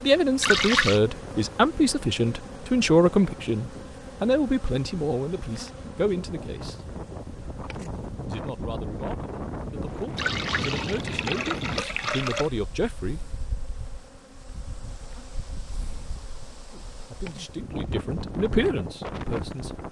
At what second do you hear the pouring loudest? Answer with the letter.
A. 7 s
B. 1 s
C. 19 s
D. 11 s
B.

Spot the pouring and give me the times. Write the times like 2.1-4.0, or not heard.
0.4-1.0, 10.2-12.5.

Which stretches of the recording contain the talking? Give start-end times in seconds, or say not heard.
0.0-6.8, 8.2-13.2, 16.7-19.8.